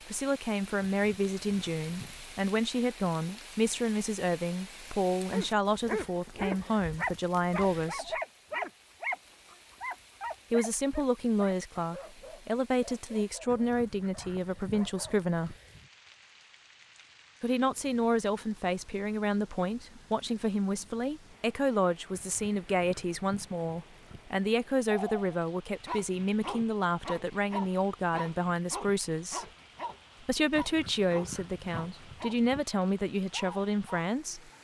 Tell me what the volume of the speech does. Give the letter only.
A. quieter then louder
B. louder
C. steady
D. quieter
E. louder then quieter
C.